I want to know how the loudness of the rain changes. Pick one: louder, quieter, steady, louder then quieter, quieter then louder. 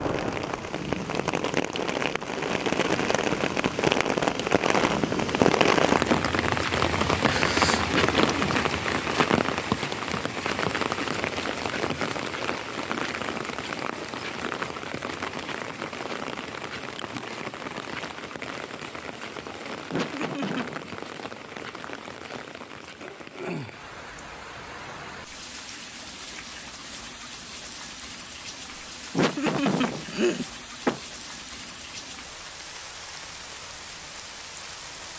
quieter.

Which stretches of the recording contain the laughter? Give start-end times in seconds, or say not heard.
7.9-8.7, 19.9-20.9, 29.1-31.0.